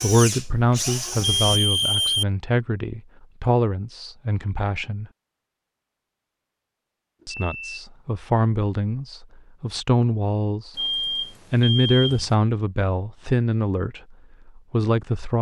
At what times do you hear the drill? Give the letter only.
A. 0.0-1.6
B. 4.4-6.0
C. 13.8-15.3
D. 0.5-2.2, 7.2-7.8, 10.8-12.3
A.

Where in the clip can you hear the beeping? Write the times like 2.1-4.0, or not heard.
0.5-2.2, 7.2-7.8, 10.8-12.3.